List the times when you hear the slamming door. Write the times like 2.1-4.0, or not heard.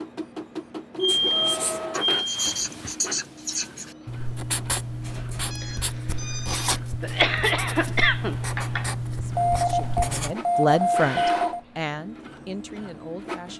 not heard.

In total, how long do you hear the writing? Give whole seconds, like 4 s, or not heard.
9 s.